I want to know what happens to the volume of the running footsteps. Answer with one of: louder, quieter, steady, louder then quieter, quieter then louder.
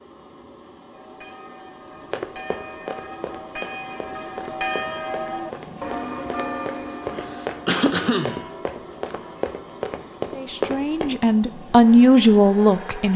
louder.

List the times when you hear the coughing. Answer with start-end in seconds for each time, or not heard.
7.1-8.4.